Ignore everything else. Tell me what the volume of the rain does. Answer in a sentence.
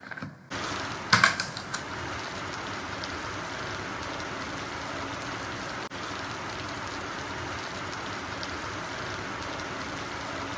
The loudness of the rain stays about the same.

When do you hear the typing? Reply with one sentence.
You can hear the typing from 0.0 to 2.0 s.